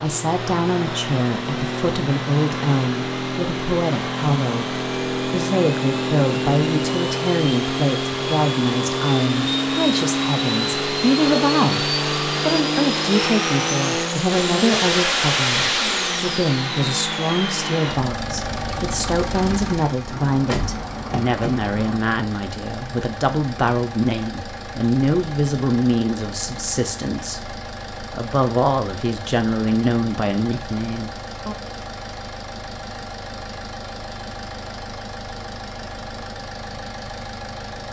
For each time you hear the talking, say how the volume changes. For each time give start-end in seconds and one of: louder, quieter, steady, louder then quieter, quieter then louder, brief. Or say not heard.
0.0-31.6 steady.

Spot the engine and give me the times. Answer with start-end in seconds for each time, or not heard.
0.0-37.8.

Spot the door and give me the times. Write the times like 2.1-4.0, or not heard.
20.1-22.0.